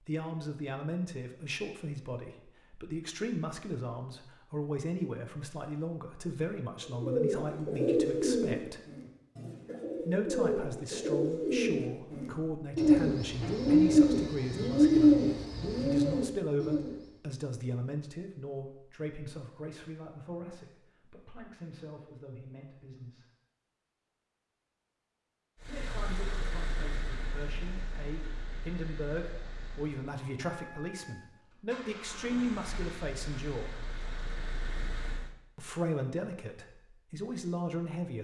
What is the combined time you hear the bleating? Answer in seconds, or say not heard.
not heard.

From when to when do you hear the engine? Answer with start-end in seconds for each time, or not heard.
25.6-35.4.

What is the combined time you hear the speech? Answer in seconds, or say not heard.
32 s.